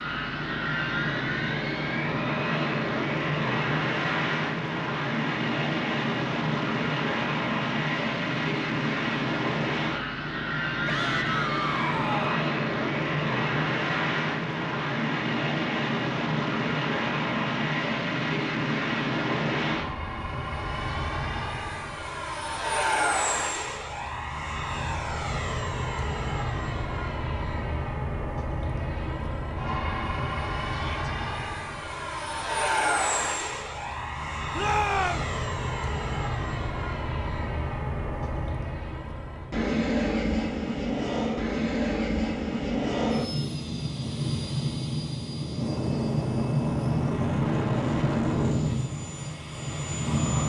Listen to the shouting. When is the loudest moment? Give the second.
35 s.